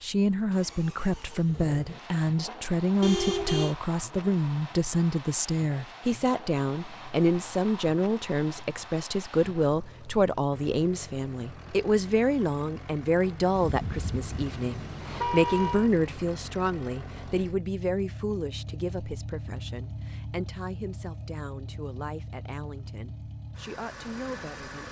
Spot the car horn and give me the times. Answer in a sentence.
You can hear the car horn from 3.0 to 3.8 s and from 13.6 to 15.9 s.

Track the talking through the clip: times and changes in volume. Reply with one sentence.
The talking can be heard from 0.0 to 24.8 s, getting quieter.